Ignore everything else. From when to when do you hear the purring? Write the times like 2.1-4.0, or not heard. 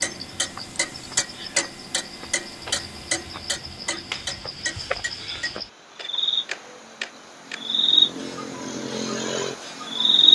not heard.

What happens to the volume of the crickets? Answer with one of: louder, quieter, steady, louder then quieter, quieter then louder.
louder.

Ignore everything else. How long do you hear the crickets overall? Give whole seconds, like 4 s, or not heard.
10 s.